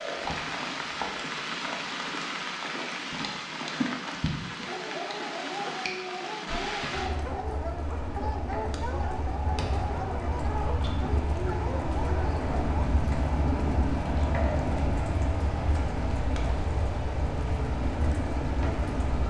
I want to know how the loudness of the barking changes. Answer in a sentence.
The volume of the barking stays about the same.